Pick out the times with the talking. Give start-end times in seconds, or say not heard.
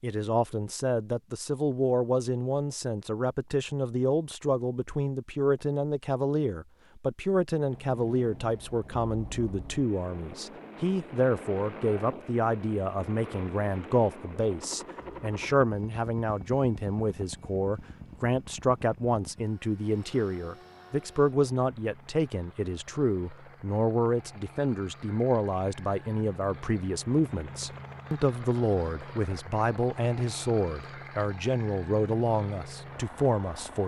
0.0-33.8.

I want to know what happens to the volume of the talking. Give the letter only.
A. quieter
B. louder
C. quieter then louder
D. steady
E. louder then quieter
D.